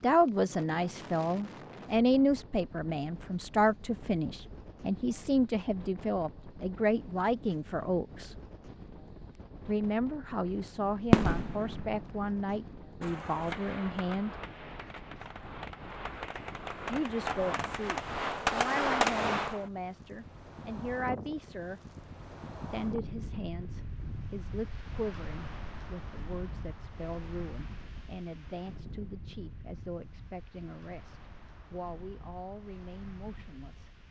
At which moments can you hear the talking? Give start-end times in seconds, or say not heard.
0.0-8.3, 9.7-14.3, 16.9-21.8, 22.7-33.9.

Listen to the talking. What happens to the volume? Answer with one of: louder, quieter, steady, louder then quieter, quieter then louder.
quieter.